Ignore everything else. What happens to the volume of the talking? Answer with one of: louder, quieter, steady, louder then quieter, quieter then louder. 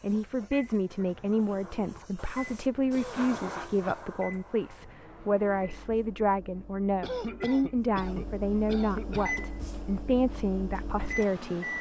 steady.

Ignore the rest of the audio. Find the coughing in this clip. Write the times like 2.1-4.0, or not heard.
2.9-4.0, 7.0-9.4.